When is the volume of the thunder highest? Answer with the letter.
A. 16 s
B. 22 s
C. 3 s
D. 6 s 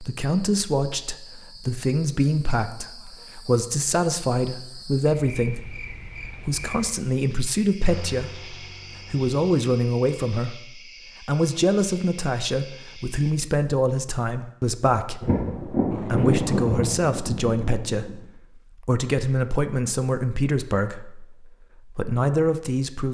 A.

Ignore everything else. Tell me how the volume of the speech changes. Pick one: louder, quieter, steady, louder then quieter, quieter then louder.
steady.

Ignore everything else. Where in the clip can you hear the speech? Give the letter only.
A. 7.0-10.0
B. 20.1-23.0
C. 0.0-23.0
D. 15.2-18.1
C.